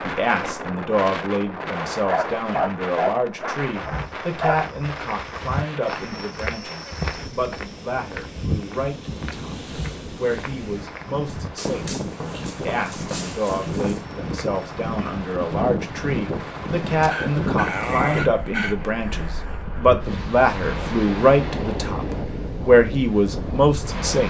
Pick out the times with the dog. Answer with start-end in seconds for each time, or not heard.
2.0-4.7, 11.6-14.0, 17.0-18.8.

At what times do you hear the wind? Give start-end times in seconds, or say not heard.
0.0-24.2.